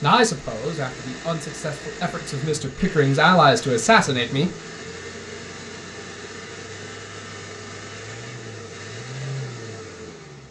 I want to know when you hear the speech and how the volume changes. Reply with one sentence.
The speech can be heard from 0.0 to 4.5 s, getting louder.